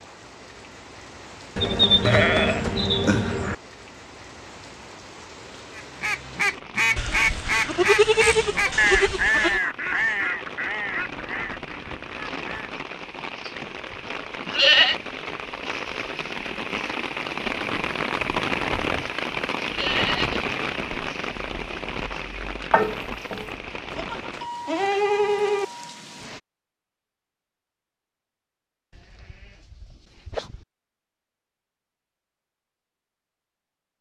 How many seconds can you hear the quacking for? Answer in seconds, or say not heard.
7 s.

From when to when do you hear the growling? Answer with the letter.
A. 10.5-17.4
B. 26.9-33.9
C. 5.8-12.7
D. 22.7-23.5
D.